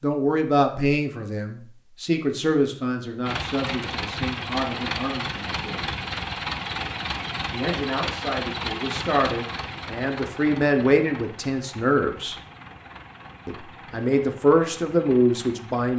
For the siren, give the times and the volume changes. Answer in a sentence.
The siren can't be heard in this clip.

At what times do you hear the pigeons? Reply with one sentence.
The pigeons can't be heard in this clip.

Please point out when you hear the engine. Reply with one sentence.
The engine can be heard from 3.2 to 15.9 s.